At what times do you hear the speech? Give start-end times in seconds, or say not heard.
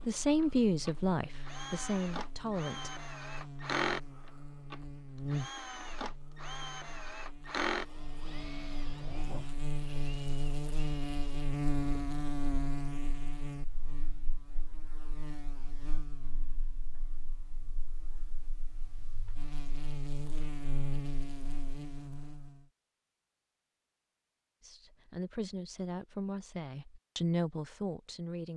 0.1-2.9, 24.6-28.5.